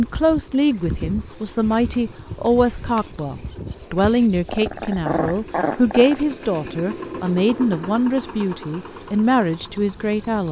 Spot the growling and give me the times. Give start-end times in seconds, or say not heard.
4.0-6.2.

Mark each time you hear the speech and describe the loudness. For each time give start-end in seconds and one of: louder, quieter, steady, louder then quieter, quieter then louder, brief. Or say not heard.
0.0-10.4 steady.